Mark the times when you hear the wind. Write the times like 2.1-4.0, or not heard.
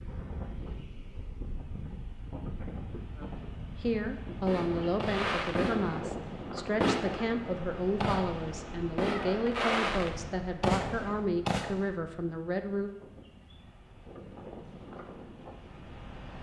0.0-16.3.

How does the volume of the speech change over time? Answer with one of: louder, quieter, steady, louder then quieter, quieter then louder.
steady.